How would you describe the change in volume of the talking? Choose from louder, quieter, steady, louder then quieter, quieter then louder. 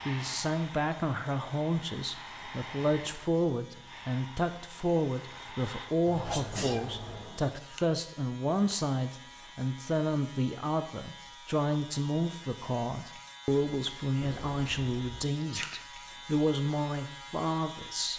steady.